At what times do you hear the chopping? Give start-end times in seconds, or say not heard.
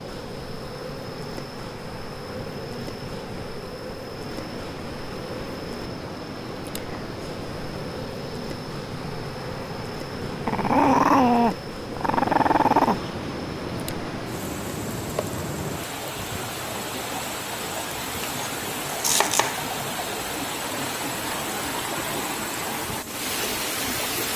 18.2-19.6.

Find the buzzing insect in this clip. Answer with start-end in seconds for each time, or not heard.
0.0-24.3.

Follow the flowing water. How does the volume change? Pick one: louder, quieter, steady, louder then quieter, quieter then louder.
louder.